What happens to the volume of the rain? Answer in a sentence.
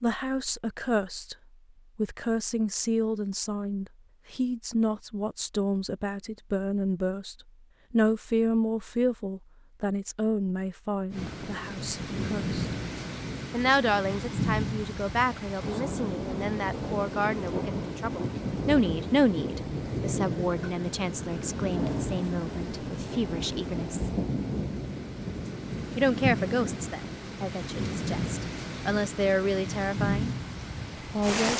The volume of the rain stays about the same.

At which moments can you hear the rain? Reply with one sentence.
You can hear the rain from 11.1 to 31.5 s.